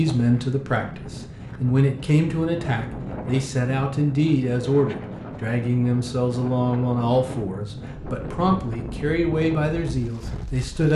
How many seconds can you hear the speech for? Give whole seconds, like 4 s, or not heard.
11 s.